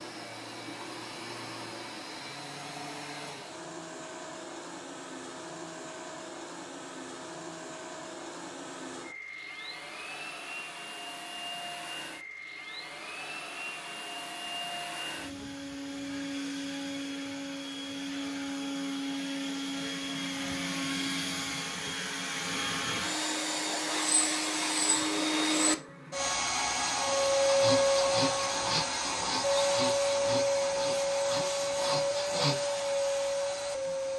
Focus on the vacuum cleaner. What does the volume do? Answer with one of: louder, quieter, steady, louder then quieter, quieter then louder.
louder.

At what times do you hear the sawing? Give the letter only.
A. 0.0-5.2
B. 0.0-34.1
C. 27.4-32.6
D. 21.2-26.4
C.